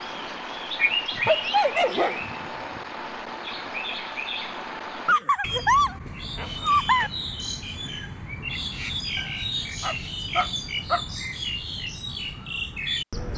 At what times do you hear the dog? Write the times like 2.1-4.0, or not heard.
1.1-2.8, 5.0-7.1, 9.2-11.0.